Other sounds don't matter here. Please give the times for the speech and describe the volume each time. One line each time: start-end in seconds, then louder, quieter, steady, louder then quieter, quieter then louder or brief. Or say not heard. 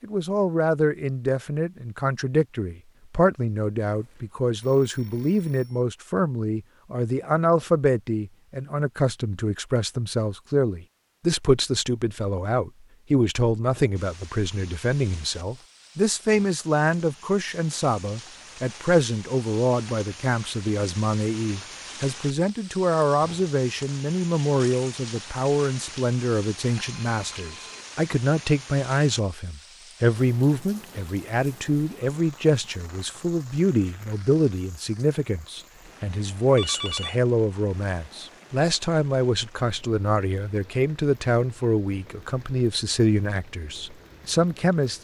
0.0-44.9 steady.